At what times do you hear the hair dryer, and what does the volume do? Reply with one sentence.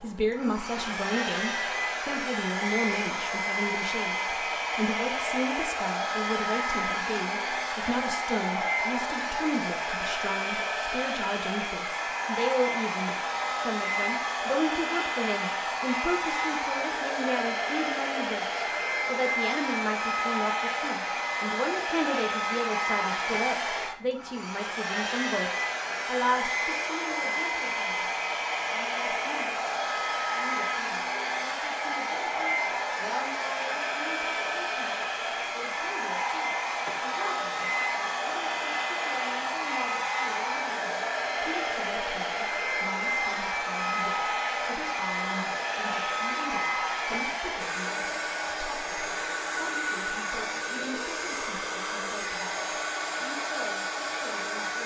The hair dryer can be heard from 0.0 to 54.8 s, at a steady volume.